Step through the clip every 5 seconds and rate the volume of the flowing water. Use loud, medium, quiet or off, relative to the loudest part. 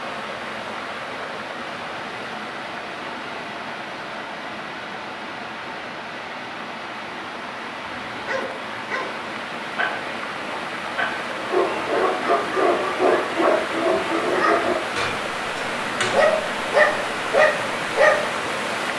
medium, medium, loud, loud.